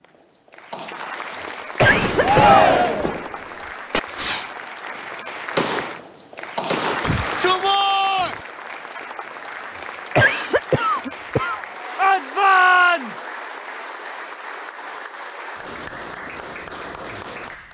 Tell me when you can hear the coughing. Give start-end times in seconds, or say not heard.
1.8-2.6, 10.2-11.7.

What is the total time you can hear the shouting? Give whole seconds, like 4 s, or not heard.
4 s.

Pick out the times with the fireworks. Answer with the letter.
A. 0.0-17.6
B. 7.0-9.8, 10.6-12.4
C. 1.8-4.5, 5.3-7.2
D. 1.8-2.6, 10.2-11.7
C.